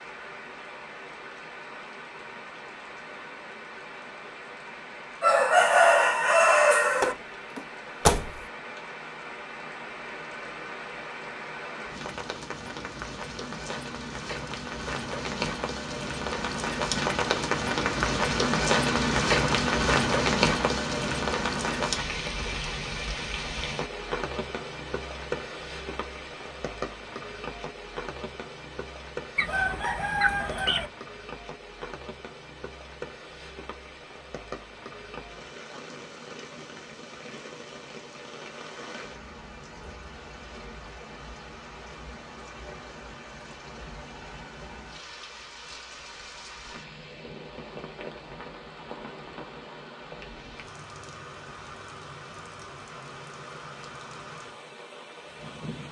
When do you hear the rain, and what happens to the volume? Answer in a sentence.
The rain can be heard from 0.0 to 55.8 s, getting louder then quieter.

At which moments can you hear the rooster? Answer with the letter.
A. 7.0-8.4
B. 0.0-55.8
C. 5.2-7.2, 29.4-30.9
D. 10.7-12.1
C.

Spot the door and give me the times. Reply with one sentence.
The door can be heard from 7.0 to 8.4 s.